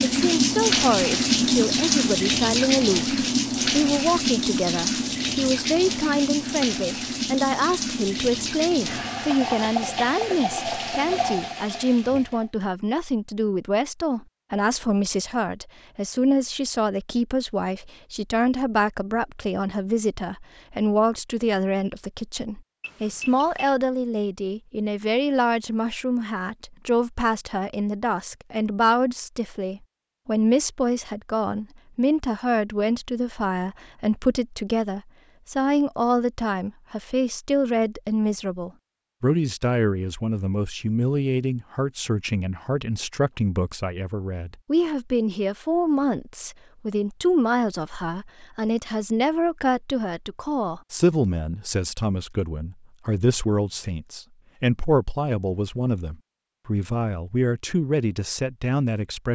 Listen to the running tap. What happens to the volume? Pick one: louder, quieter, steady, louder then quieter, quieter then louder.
quieter.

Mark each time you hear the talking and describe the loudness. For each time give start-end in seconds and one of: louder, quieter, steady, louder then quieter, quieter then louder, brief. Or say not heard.
0.0-59.2 steady.